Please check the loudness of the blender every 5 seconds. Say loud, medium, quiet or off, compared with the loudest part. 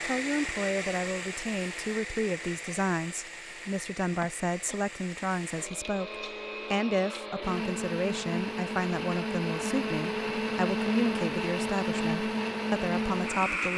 medium, medium, loud.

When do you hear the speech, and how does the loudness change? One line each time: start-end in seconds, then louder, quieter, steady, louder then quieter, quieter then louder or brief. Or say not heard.
0.0-13.7 steady.